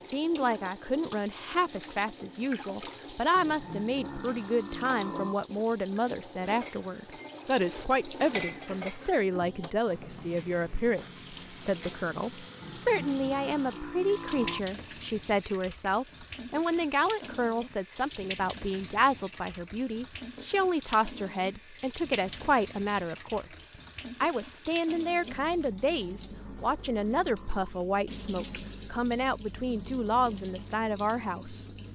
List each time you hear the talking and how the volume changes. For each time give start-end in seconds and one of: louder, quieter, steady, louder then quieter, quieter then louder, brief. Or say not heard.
0.0-31.7 steady.